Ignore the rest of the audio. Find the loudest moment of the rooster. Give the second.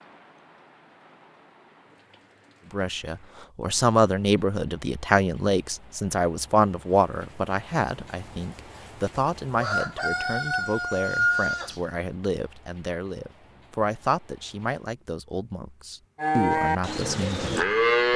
11 s.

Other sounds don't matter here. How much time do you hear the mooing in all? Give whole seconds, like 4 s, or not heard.
2 s.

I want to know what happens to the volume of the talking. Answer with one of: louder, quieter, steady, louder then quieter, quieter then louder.
quieter.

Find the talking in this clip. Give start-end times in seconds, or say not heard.
2.7-18.1.